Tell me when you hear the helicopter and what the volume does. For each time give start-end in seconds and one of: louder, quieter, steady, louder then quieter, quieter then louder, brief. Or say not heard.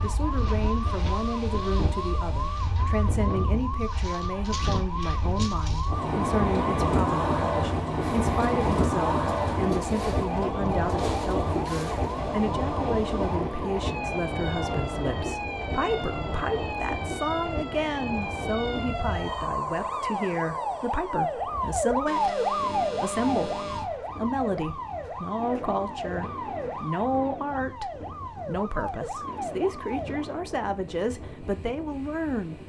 not heard.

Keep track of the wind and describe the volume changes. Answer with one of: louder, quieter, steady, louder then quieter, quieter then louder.
louder then quieter.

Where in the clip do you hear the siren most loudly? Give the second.
22 s.